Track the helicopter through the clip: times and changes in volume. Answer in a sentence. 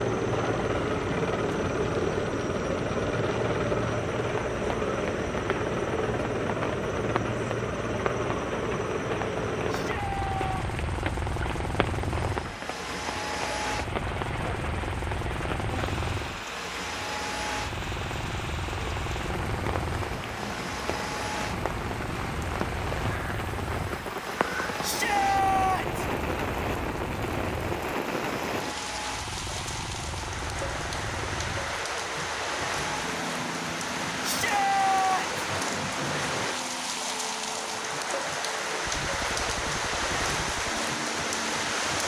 You can hear the helicopter from 0.0 to 42.0 s, getting quieter.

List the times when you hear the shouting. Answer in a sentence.
The shouting can be heard from 9.7 to 10.6 s, from 24.8 to 26.1 s and from 34.2 to 35.3 s.